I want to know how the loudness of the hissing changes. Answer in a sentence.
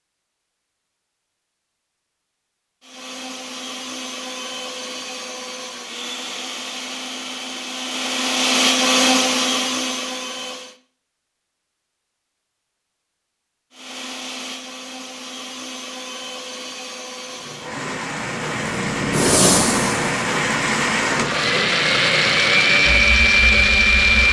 The volume of the hissing goes up, then down.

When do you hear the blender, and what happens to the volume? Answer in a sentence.
The blender can be heard from 2.8 to 10.8 s, getting louder; and from 13.7 to 24.2 s, getting louder.